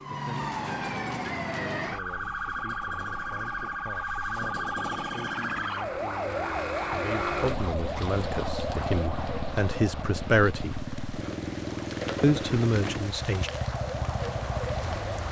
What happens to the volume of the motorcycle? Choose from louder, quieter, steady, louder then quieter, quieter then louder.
louder.